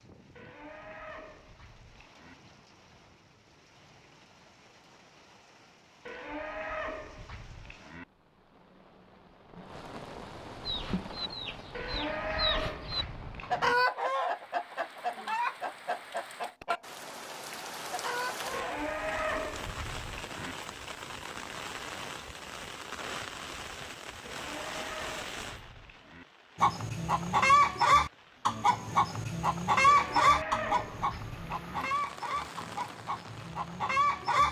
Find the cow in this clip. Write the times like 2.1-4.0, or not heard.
0.3-2.4, 6.0-8.1, 11.7-13.8, 18.5-20.6, 24.2-26.2, 29.9-31.9.